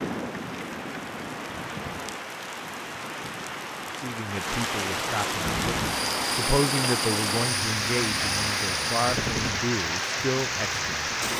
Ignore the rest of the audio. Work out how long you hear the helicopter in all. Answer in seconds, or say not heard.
4 s.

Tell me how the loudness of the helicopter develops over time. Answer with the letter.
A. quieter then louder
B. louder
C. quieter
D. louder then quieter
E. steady
E.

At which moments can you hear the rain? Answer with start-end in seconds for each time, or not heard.
0.0-11.3.